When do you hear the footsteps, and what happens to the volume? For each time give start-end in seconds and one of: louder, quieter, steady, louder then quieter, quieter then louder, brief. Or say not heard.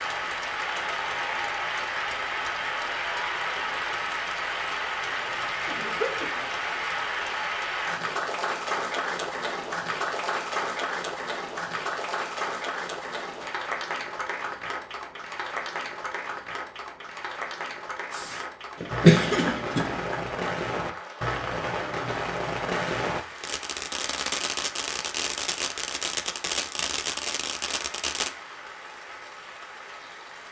not heard.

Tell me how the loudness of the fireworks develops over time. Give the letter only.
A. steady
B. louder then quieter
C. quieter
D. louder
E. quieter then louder
A.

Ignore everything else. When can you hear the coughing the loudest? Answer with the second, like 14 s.
19 s.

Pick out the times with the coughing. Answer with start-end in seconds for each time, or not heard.
5.3-6.5, 18.8-20.0.